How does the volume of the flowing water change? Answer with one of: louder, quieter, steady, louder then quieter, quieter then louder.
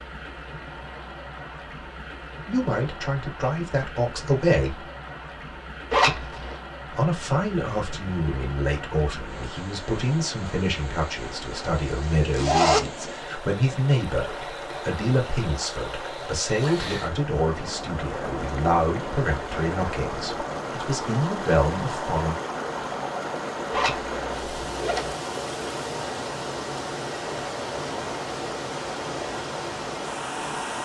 louder.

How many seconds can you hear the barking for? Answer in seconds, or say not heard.
not heard.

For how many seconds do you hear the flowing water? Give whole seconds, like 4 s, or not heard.
31 s.